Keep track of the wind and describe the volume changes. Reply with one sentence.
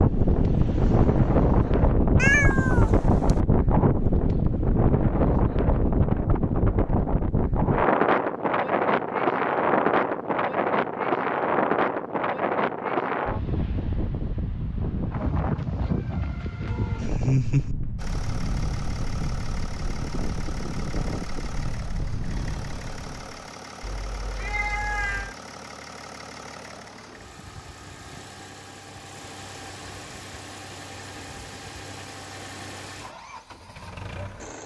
The volume of the wind goes down.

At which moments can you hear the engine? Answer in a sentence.
You can hear the engine from 0.0 to 1.9 s and from 17.9 to 34.6 s.